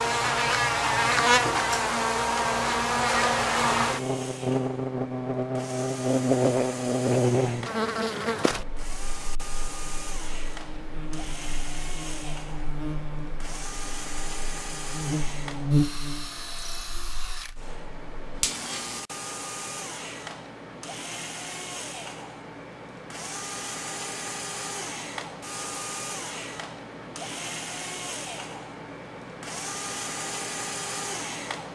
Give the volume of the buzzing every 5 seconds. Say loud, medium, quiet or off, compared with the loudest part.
loud, loud, quiet, medium, off, off, off.